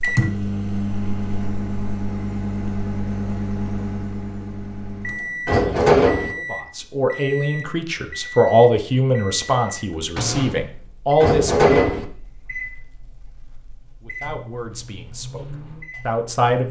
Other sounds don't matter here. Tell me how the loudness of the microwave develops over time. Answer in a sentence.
The loudness of the microwave goes down.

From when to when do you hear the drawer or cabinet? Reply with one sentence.
You can hear the drawer or cabinet from 5.5 to 6.3 s and from 11.2 to 12.1 s.